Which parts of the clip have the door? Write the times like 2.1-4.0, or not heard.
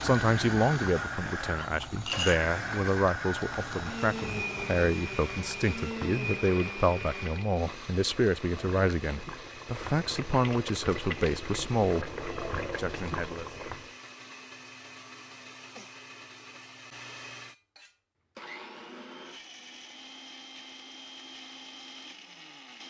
not heard.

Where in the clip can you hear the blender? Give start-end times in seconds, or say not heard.
0.0-22.8.